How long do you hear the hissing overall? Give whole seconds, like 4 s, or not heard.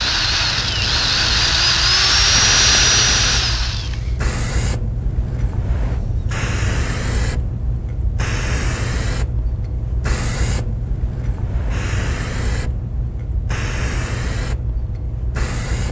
16 s.